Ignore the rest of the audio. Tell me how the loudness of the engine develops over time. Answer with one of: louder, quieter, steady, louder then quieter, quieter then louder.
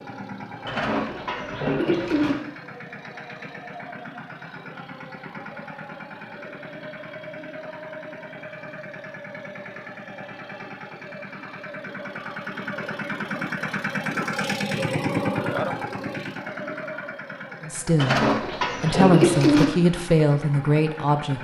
louder then quieter.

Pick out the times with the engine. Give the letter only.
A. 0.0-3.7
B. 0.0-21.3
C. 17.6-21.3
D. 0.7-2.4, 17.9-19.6
B.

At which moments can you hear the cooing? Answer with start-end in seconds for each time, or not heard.
0.7-2.4, 17.9-19.6.